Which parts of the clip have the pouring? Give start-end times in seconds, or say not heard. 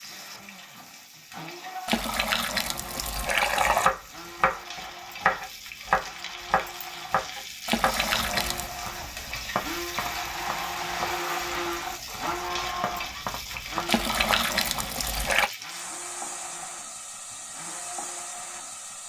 1.9-3.9, 7.7-8.7, 13.8-15.5.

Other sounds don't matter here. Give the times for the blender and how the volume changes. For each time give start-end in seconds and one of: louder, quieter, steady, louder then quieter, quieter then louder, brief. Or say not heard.
0.0-18.9 louder then quieter.